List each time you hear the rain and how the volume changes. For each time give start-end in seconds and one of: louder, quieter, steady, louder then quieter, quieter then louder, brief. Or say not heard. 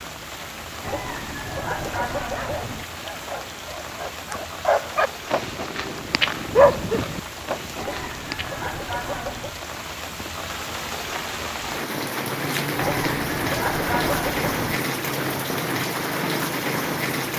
0.0-17.3 louder.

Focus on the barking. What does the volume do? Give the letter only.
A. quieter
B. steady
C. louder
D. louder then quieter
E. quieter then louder
D.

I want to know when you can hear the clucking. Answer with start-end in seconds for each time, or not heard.
0.8-2.9, 7.8-9.6, 12.8-14.7.